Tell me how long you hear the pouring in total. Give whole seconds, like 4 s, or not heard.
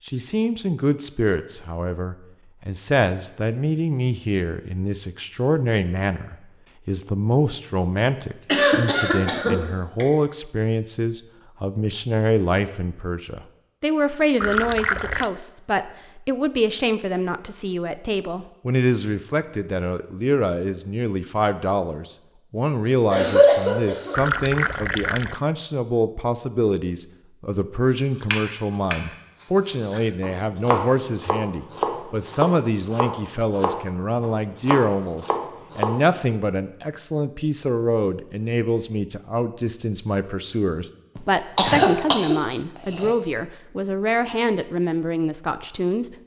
2 s.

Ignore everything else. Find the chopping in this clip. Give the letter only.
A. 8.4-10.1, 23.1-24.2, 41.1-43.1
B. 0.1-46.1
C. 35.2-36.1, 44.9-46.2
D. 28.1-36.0
D.